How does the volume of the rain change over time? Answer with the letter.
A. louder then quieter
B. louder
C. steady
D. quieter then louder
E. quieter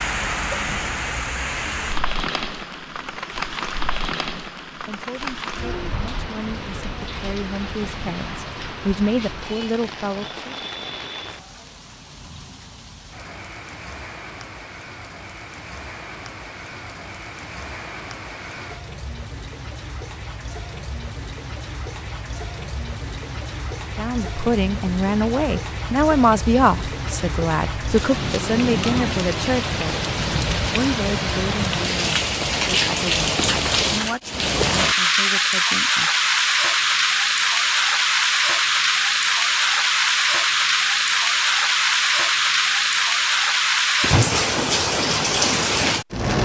D.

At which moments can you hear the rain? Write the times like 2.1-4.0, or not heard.
0.0-46.3.